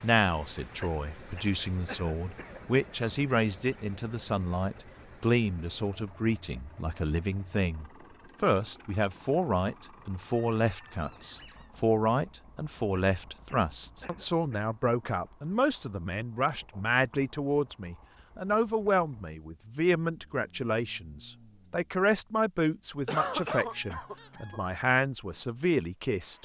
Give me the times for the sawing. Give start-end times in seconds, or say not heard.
not heard.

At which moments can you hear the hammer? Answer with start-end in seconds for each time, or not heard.
not heard.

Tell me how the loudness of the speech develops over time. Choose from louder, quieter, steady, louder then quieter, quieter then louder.
steady.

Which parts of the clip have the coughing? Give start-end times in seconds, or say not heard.
0.8-2.8, 12.9-14.8, 23.1-24.6.